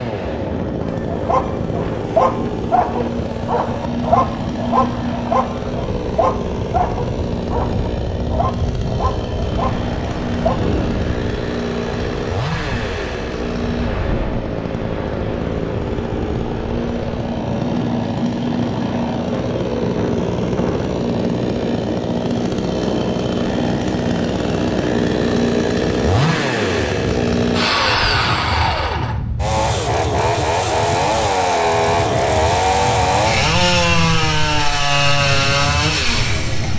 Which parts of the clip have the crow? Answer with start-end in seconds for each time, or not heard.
not heard.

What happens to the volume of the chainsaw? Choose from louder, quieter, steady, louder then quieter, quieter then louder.
louder.